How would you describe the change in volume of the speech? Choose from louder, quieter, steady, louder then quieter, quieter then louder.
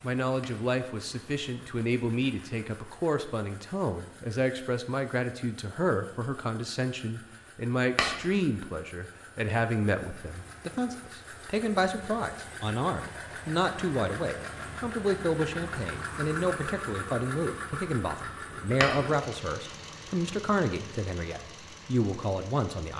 steady.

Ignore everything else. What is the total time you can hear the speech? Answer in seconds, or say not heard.
23 s.